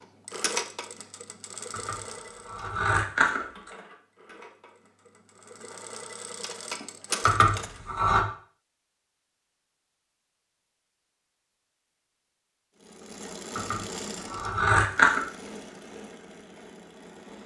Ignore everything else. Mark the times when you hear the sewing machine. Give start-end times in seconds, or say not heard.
0.0-7.8, 12.8-17.4.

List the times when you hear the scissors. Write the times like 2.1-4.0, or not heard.
1.7-3.7, 7.2-8.2, 13.6-15.2.